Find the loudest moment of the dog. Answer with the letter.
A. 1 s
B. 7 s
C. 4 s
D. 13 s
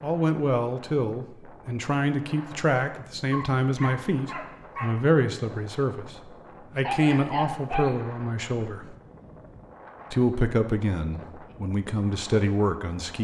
B.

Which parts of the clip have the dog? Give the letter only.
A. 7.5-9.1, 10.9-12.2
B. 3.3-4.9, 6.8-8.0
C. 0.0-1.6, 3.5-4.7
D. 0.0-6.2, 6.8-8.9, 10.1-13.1
B.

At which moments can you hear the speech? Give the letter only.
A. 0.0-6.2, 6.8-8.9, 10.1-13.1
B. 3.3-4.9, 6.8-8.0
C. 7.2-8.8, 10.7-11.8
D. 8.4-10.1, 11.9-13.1
A.